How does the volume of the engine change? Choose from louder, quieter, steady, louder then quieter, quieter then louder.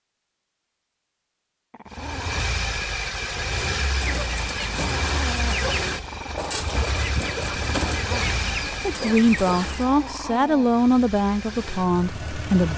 quieter.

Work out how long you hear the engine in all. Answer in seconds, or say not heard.
11 s.